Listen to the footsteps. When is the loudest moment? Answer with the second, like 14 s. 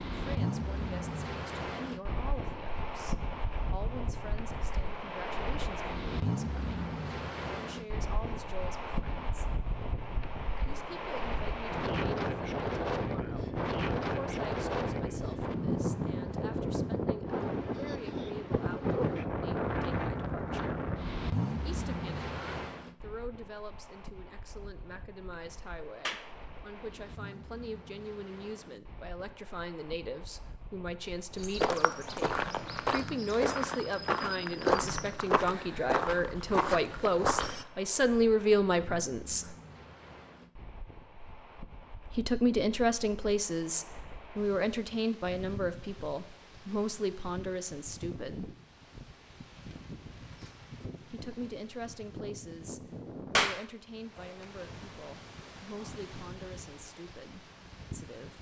35 s.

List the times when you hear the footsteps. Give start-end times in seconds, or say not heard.
31.4-37.6.